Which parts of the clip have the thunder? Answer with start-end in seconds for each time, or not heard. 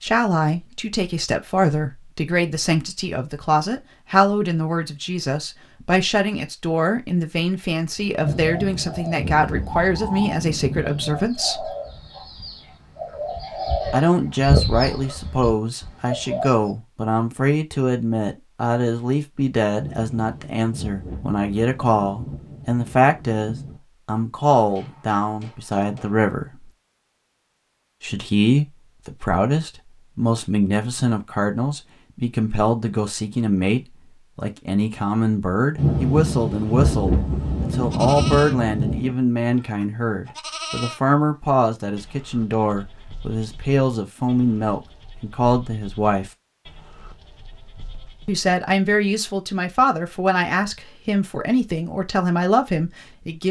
8.2-11.2, 19.8-23.8, 35.8-39.1.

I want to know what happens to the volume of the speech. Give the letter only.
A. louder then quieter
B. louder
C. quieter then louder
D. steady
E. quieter
D.